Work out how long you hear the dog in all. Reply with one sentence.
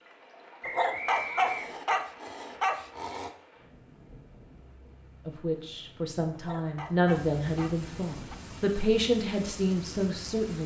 The dog can be heard for 5 seconds in total.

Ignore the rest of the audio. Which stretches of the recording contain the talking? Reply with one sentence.
The talking can be heard from 5.2 to 10.6 s.